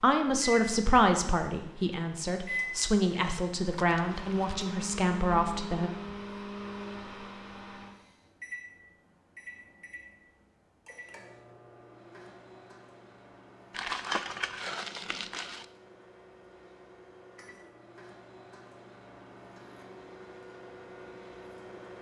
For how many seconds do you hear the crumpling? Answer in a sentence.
You can hear the crumpling for 3 seconds altogether.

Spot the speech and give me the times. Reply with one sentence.
The speech can be heard from 0.0 to 5.9 s.